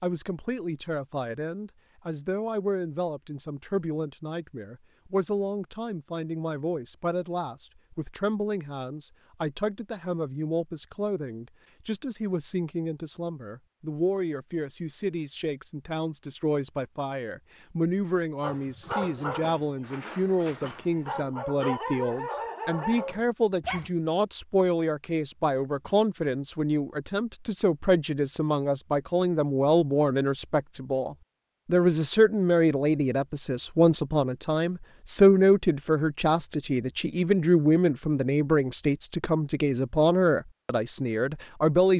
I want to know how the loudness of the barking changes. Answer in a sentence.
The volume of the barking goes down, then up.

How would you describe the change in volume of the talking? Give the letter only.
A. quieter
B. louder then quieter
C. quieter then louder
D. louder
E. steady
D.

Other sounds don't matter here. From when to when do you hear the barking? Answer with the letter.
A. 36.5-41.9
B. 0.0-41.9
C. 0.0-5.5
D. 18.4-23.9
D.